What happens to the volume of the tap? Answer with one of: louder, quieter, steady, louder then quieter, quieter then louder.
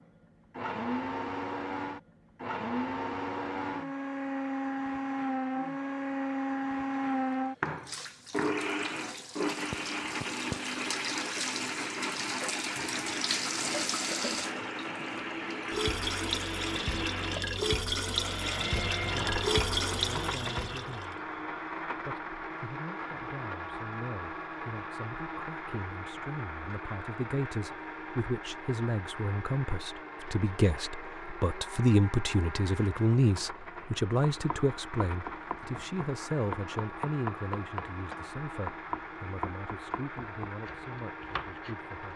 louder.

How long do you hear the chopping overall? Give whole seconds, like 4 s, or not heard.
8 s.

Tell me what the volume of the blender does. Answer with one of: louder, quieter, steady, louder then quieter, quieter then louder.
quieter.